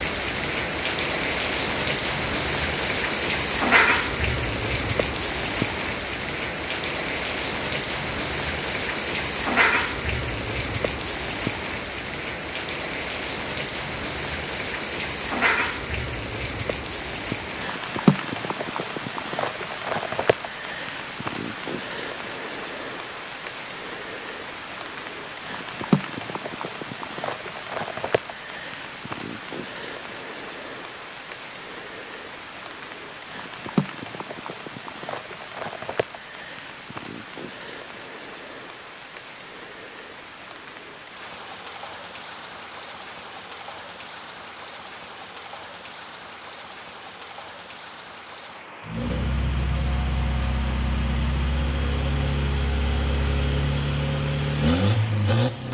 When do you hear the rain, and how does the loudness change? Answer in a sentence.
The rain can be heard from 0.0 to 55.6 s, getting quieter.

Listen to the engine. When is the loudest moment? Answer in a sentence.
The volume of the engine peaks at 55 seconds.